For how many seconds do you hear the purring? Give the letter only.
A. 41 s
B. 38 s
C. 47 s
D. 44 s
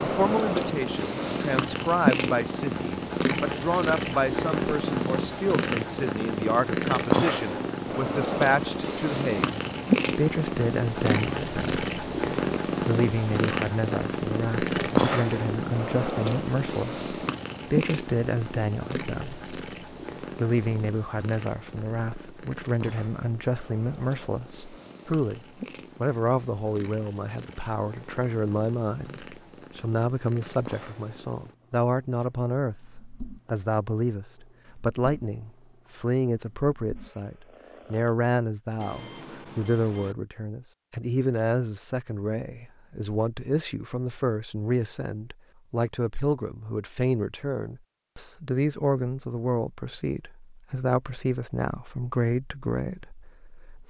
B.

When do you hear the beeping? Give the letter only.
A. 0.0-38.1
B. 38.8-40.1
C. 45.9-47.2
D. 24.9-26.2
B.